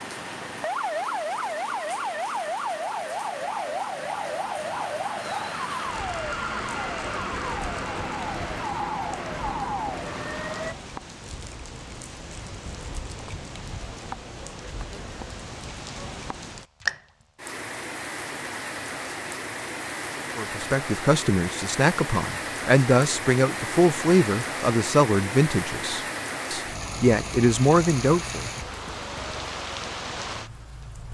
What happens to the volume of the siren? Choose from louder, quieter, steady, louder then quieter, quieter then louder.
steady.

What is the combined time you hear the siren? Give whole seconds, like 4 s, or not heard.
11 s.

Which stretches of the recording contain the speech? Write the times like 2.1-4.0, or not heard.
20.4-28.4.